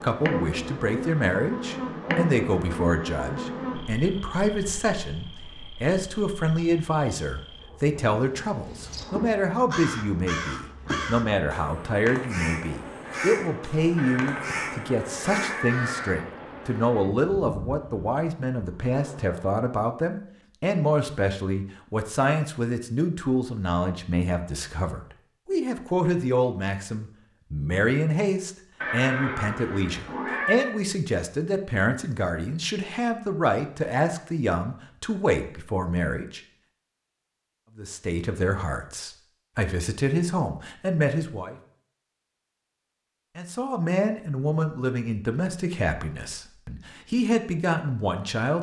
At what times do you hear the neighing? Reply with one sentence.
You can hear the neighing from 13.9 to 16.2 s and from 28.8 to 30.7 s.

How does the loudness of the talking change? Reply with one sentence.
The volume of the talking stays about the same.